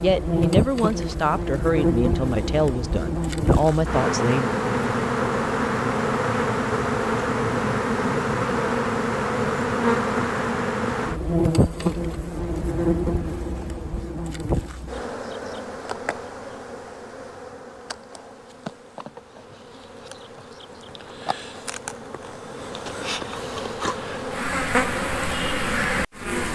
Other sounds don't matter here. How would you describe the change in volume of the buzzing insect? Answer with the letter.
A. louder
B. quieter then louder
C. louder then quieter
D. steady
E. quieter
B.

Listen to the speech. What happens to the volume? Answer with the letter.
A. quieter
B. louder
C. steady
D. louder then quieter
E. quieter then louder
E.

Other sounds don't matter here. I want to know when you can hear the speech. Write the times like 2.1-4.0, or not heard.
0.0-4.6.